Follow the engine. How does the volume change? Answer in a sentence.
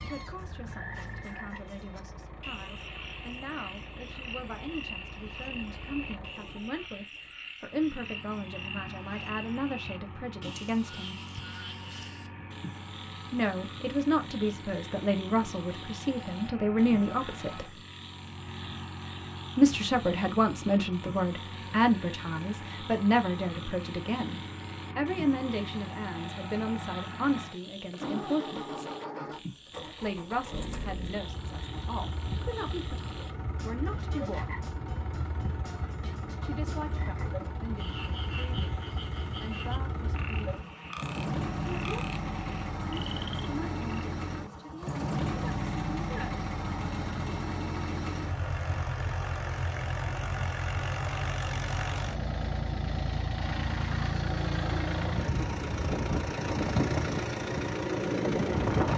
The volume of the engine goes up.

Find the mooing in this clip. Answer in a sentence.
The mooing can't be heard in this clip.